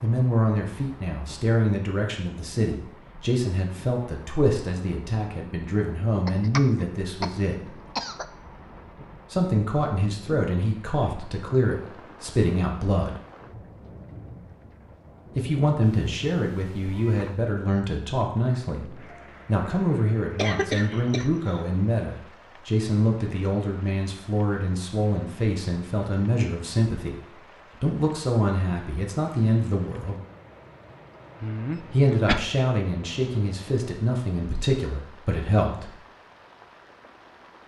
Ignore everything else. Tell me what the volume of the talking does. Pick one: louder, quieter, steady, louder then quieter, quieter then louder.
steady.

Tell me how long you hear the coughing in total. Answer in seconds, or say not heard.
4 s.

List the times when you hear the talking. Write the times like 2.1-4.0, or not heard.
0.0-7.8, 9.3-13.2, 15.3-30.2, 31.9-36.0.